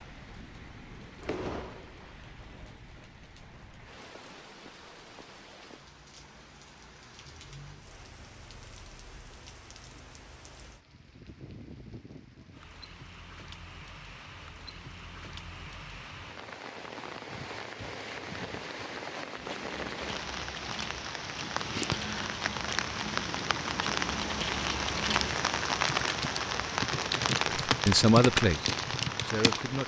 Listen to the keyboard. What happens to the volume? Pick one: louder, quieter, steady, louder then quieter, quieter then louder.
louder.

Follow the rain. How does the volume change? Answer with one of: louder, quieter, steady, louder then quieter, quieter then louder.
louder.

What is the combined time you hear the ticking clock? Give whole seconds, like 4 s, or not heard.
not heard.